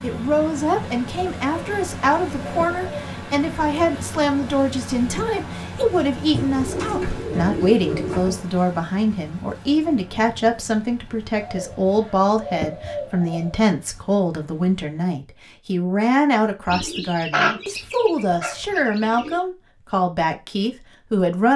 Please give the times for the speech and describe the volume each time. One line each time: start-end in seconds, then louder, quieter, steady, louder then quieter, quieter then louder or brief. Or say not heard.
0.0-21.5 steady.